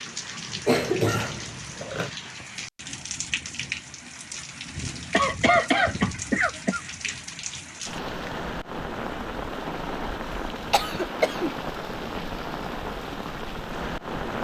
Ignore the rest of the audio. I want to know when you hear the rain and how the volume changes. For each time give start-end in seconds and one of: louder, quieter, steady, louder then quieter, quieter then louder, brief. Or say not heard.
0.0-14.3 steady.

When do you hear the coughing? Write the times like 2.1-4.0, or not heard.
0.7-2.1, 5.1-6.8, 10.7-11.5.